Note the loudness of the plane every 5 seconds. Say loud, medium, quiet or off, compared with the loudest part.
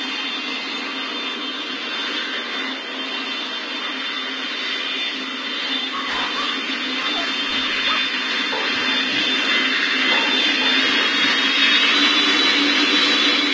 medium, medium, loud.